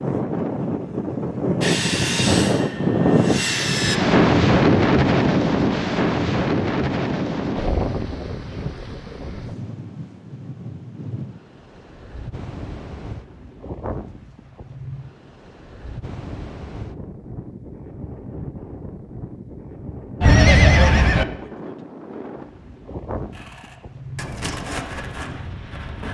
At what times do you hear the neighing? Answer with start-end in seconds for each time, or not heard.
20.2-21.2.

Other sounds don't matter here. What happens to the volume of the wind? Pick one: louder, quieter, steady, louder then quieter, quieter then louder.
quieter.